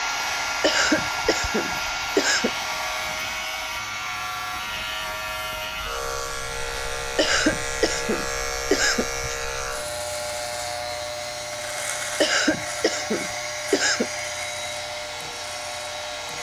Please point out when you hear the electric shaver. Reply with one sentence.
You can hear the electric shaver from 0.0 to 16.3 s.